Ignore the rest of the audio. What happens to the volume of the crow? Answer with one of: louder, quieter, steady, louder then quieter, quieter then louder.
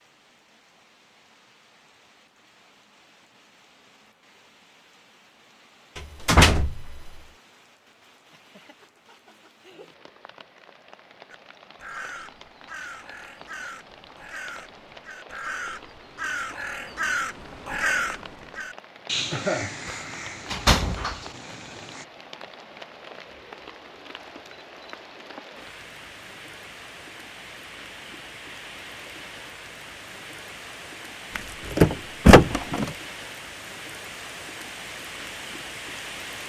louder then quieter.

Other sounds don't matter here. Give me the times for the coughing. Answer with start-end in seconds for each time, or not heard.
19.3-19.8.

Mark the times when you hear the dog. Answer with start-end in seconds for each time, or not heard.
not heard.